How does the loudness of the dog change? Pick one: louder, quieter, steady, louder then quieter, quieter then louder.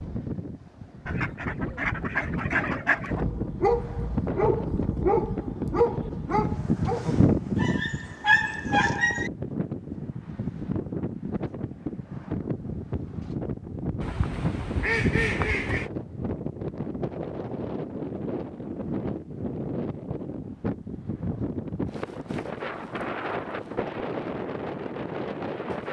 quieter then louder.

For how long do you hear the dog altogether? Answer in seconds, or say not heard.
6 s.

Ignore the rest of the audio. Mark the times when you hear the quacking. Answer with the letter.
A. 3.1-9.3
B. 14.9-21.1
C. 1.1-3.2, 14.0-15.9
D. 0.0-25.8
C.